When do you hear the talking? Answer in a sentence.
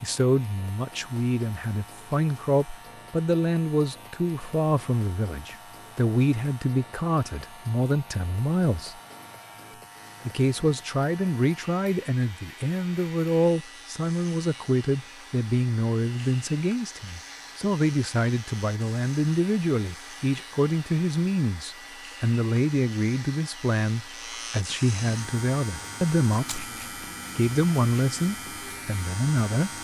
You can hear the talking from 0.0 to 9.0 s, from 10.2 to 26.6 s and from 27.4 to 29.7 s.